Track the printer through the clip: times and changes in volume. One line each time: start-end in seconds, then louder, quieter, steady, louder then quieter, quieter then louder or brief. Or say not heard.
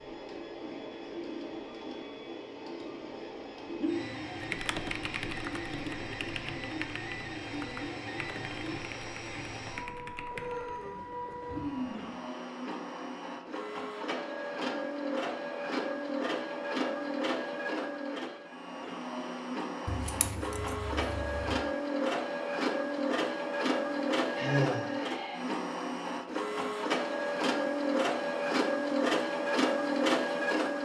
0.0-30.8 louder.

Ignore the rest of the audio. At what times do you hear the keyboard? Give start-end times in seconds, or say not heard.
4.4-10.8.